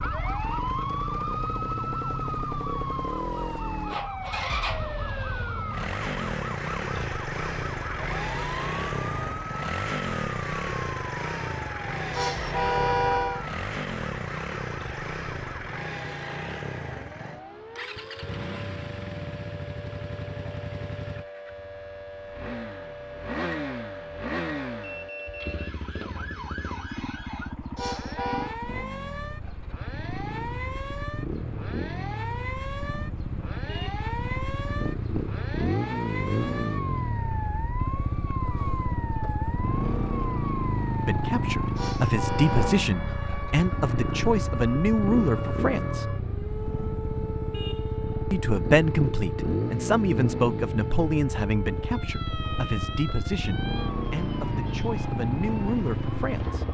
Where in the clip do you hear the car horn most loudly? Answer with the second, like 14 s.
13 s.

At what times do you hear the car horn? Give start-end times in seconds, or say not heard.
12.1-13.4, 27.8-28.6, 41.8-42.9.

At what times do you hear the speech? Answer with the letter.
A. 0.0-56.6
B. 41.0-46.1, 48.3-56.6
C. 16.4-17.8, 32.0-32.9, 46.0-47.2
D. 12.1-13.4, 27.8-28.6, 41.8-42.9
B.